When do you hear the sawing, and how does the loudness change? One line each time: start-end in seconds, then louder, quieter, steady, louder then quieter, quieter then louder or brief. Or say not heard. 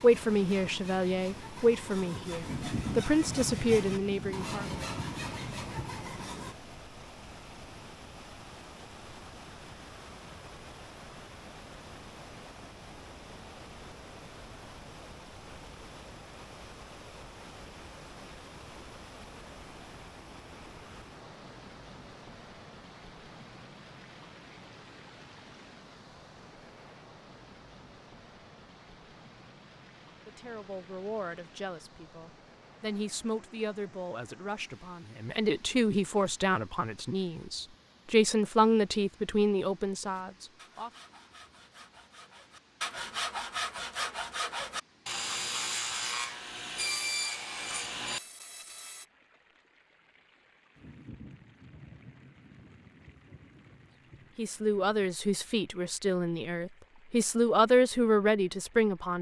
0.0-6.5 louder
40.0-49.0 louder.